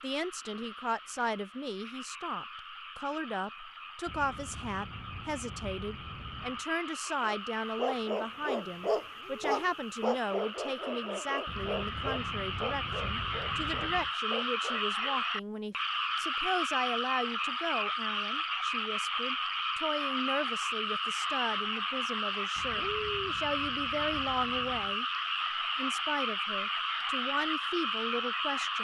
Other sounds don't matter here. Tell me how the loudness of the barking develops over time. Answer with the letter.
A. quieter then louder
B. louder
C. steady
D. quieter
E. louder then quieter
D.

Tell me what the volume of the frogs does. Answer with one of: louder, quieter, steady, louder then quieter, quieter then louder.
louder.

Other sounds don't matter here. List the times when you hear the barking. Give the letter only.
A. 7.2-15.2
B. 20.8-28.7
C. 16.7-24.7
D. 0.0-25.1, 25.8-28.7
A.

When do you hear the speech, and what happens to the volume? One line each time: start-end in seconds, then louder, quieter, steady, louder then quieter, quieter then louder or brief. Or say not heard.
0.0-25.1 steady
25.8-28.7 brief.